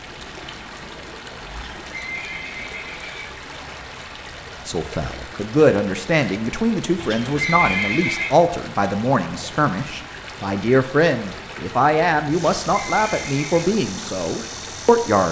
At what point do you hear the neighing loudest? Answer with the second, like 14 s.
8 s.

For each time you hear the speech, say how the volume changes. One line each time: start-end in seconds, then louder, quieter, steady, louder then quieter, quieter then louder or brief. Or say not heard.
4.7-15.2 steady.